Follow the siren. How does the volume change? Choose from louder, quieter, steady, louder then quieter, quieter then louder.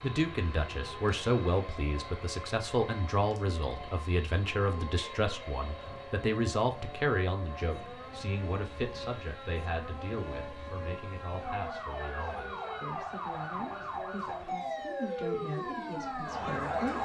louder.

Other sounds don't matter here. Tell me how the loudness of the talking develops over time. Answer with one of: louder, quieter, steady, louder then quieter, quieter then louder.
quieter.